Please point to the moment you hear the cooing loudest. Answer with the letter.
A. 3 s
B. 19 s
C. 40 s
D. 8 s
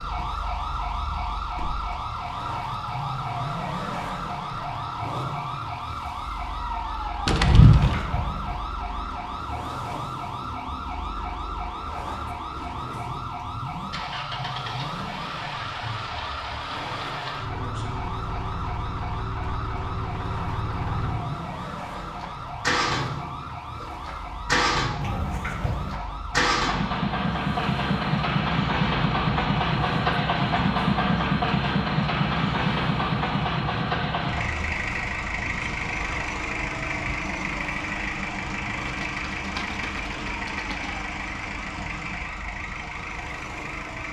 D.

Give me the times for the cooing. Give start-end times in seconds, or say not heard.
7.2-8.1, 38.9-41.0.